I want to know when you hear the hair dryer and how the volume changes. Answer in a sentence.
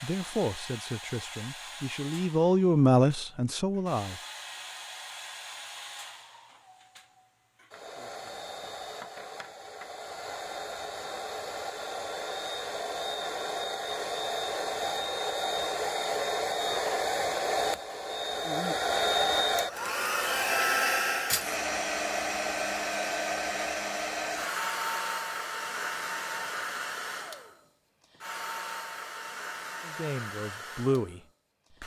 The hair dryer can be heard from 0.0 to 31.8 s, getting louder then quieter.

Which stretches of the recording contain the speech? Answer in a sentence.
You can hear the speech from 0.0 to 4.2 s and from 29.9 to 31.2 s.